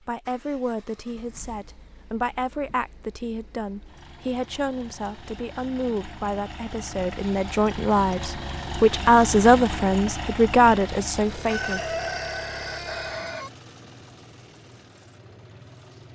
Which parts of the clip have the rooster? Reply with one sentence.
The rooster can be heard from 11.4 to 13.5 s.